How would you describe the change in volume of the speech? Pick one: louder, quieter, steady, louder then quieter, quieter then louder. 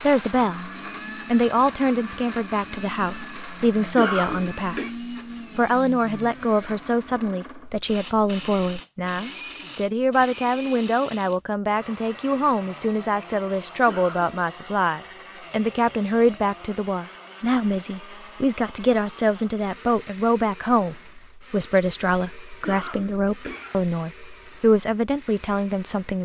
steady.